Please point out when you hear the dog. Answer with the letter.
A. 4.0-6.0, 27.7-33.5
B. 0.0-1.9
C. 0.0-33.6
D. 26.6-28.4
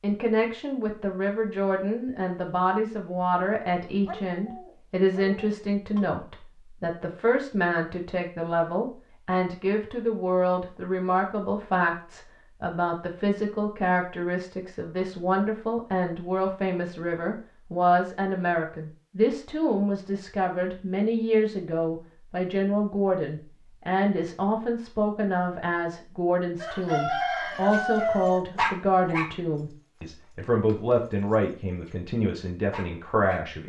A.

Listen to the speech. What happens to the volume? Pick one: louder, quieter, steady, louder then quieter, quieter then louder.
steady.